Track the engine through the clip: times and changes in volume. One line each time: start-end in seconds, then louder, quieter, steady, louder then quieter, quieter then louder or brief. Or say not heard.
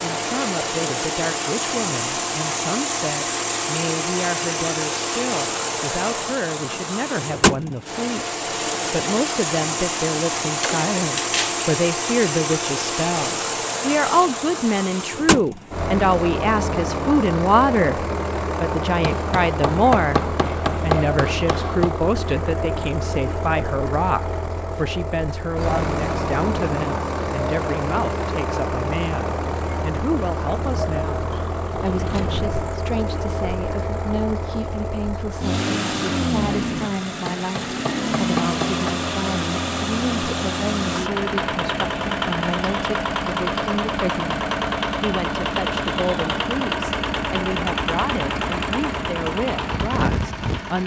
0.0-50.8 steady.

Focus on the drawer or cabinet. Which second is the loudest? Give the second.
11 s.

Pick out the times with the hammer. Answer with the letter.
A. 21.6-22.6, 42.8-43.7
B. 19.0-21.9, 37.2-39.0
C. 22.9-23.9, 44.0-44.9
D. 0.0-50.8
B.